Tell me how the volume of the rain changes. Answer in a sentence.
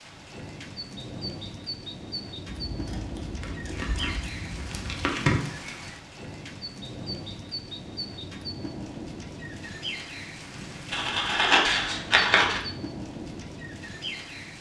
The volume of the rain stays about the same.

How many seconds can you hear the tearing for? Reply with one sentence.
The tearing can be heard for 2 seconds in total.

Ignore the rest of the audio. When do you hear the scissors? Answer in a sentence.
The scissors can be heard from 2.5 to 5.0 s and from 10.9 to 12.6 s.